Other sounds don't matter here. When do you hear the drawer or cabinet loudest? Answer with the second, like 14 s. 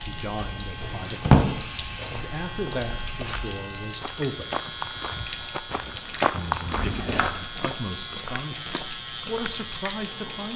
1 s.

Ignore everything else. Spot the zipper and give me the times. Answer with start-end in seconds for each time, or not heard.
not heard.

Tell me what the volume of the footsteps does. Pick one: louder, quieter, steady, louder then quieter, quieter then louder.
louder then quieter.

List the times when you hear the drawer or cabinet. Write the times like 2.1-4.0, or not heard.
0.8-1.6, 6.7-7.3.